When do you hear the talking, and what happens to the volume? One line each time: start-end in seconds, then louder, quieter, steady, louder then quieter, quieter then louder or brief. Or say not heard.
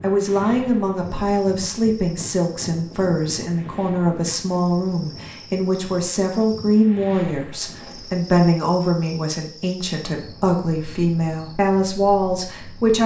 0.0-13.0 steady.